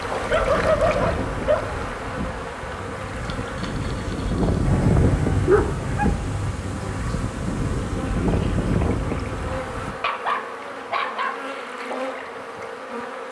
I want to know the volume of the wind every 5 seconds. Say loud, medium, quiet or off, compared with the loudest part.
loud, loud, off.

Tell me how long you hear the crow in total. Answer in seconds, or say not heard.
not heard.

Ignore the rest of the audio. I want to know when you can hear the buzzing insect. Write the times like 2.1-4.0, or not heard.
0.0-13.2.